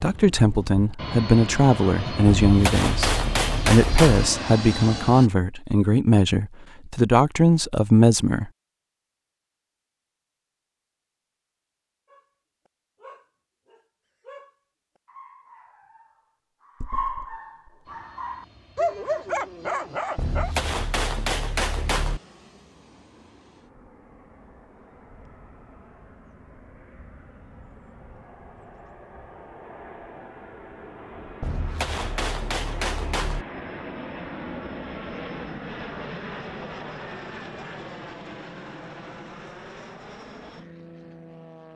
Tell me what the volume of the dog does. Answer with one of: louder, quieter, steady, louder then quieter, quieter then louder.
louder.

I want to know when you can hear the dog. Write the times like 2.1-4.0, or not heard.
12.1-20.6.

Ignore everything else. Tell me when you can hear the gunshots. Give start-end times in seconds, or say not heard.
2.2-4.3, 20.1-22.2, 31.4-33.5.